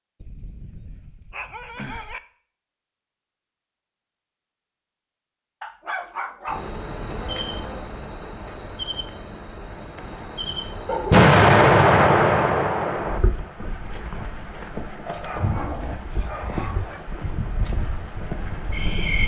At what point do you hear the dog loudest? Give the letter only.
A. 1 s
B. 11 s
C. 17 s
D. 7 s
B.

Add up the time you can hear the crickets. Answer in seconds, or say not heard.
13 s.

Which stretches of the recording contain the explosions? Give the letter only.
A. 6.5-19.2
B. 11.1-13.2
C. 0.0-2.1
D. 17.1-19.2
B.